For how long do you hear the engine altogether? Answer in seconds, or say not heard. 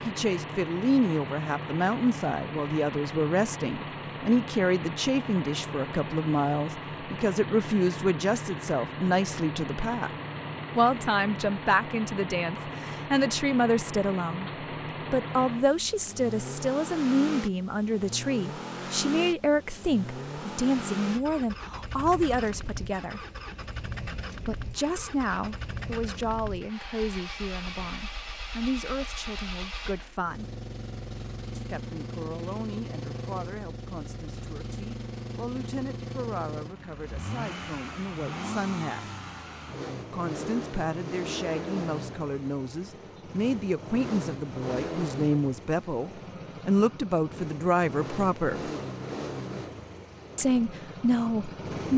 52 s.